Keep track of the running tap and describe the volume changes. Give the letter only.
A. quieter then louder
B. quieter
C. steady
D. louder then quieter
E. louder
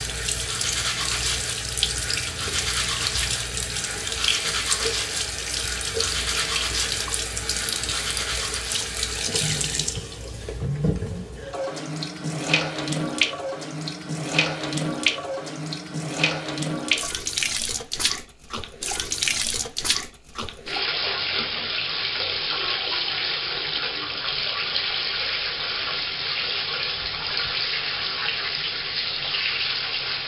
C.